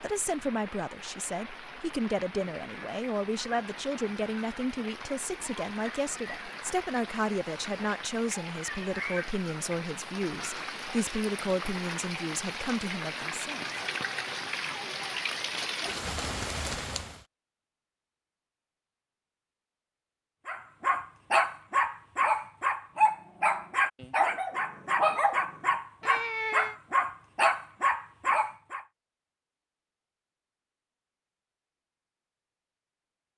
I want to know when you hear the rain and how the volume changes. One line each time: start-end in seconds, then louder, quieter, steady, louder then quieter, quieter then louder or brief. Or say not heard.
0.0-17.2 louder.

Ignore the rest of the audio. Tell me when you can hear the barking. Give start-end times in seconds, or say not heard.
20.4-28.9.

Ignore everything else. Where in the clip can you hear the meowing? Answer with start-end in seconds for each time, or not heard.
26.0-26.8.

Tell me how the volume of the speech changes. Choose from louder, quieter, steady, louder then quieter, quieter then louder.
steady.